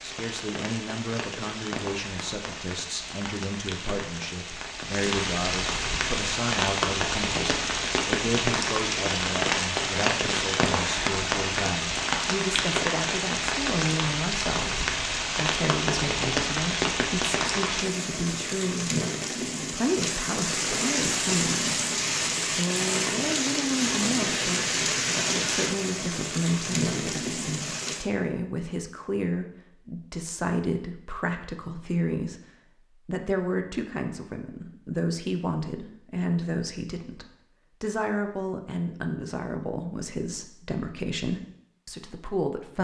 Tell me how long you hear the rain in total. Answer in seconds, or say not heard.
28 s.